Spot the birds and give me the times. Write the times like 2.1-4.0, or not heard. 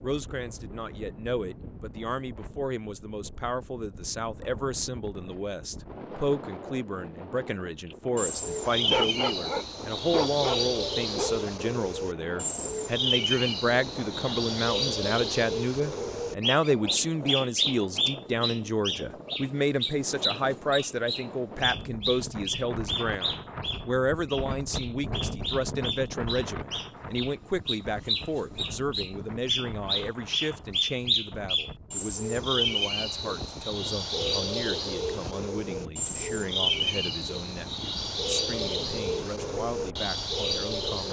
7.9-41.0.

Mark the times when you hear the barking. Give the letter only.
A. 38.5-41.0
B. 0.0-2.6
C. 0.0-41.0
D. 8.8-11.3
D.